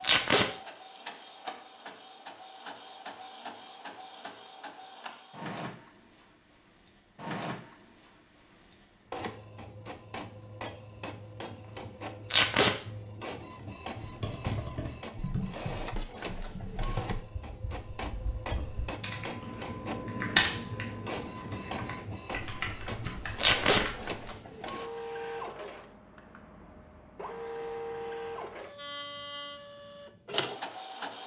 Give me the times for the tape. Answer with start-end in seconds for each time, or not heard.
0.0-0.5, 12.3-12.8, 23.4-23.9.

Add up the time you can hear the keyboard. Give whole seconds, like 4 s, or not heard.
10 s.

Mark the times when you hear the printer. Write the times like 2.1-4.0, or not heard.
0.0-31.2.